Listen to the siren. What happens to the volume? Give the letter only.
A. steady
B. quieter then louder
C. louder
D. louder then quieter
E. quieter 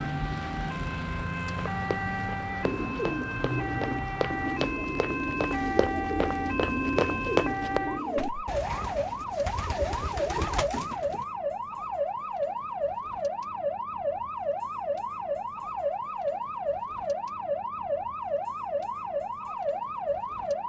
A.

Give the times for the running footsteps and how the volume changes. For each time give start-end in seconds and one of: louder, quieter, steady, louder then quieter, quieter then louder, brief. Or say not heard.
1.6-8.4 louder.